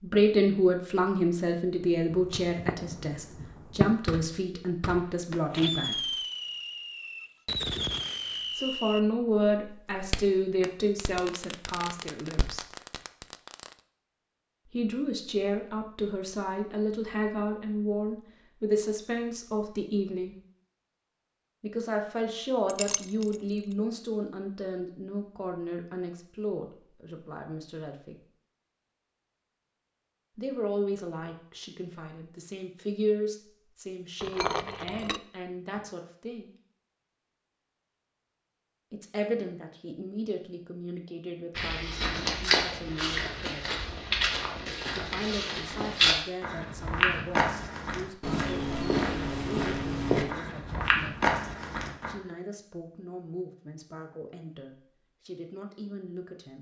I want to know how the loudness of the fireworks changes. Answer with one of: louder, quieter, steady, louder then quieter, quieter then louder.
quieter.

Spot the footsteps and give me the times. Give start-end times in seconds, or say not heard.
41.5-52.1.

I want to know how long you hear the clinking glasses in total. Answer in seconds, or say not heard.
2 s.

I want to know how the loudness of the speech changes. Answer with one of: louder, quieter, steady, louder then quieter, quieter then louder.
quieter.